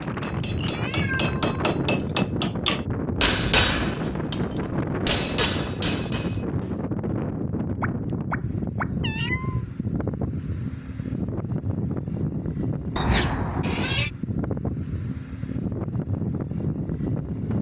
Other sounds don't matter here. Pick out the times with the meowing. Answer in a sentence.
You can hear the meowing from 0.5 to 2.3 s, from 7.8 to 9.6 s and from 12.9 to 14.1 s.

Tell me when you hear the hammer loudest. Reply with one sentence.
The loudest moment of the hammer is at 4 seconds.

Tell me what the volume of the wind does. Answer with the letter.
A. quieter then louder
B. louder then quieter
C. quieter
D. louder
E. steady
E.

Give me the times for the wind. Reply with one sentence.
You can hear the wind from 0.0 to 17.5 s.